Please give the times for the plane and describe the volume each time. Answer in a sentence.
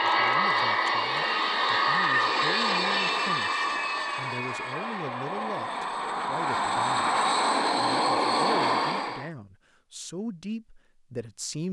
The plane can be heard from 0.0 to 9.3 s, getting quieter then louder.